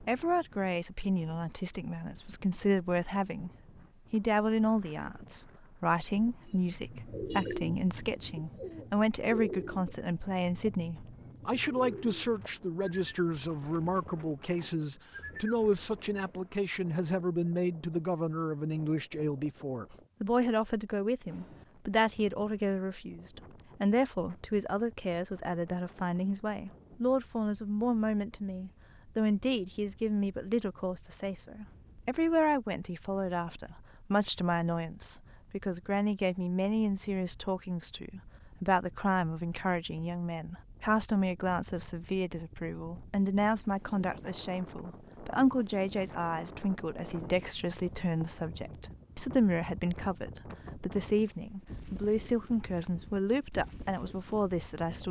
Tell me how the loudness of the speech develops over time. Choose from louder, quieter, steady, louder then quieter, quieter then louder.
steady.